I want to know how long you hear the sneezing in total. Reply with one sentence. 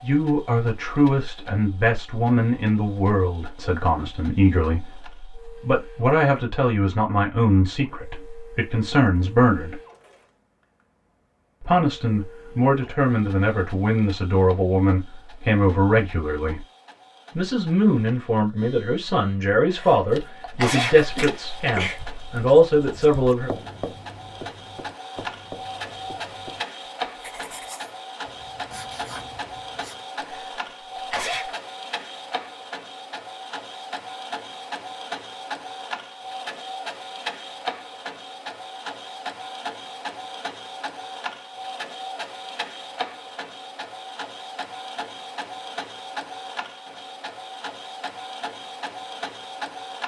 You can hear the sneezing for 4 seconds altogether.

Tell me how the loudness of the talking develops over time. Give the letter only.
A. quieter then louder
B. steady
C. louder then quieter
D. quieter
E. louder
B.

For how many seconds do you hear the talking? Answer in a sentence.
You can hear the talking for 21 seconds altogether.